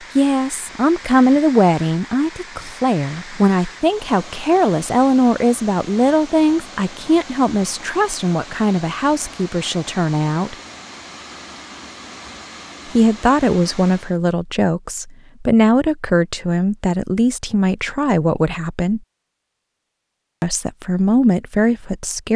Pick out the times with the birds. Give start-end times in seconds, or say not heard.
not heard.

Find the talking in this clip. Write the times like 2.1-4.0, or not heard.
0.1-10.6, 12.9-19.0, 20.4-22.3.